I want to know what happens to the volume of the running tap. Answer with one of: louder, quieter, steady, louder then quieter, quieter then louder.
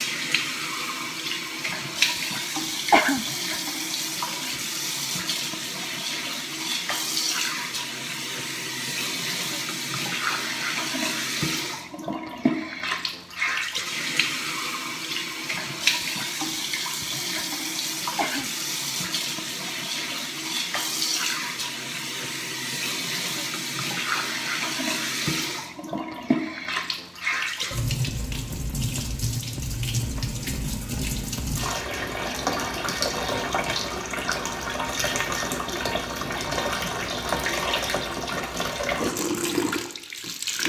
steady.